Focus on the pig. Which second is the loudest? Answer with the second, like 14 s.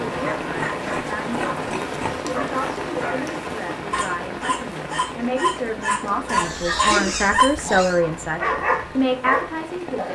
7 s.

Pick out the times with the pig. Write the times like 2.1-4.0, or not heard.
0.6-2.2, 6.3-8.0.